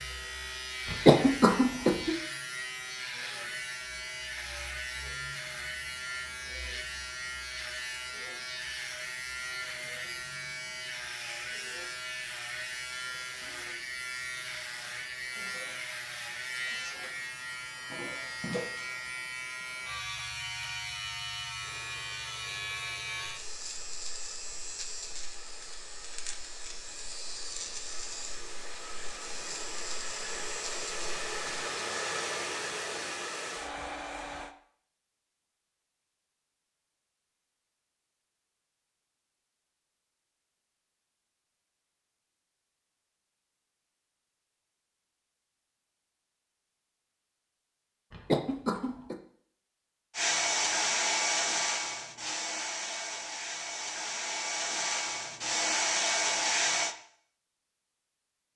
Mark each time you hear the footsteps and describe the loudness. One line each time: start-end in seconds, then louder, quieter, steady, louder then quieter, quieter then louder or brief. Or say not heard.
not heard.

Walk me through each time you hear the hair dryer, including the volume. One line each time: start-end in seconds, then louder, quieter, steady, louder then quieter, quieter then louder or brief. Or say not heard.
21.6-34.5 louder
50.1-57.0 quieter then louder.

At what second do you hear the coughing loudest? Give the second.
1 s.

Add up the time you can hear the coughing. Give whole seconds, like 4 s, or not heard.
2 s.